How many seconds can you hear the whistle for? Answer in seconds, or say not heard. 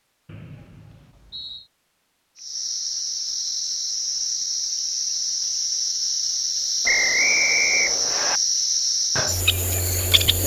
3 s.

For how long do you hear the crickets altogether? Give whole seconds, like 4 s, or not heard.
8 s.